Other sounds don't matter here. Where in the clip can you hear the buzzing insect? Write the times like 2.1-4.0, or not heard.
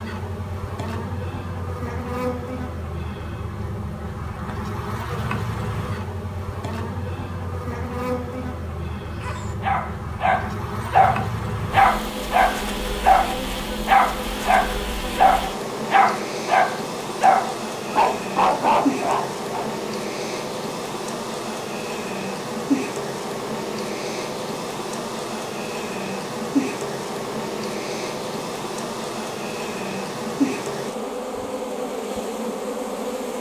0.0-33.3.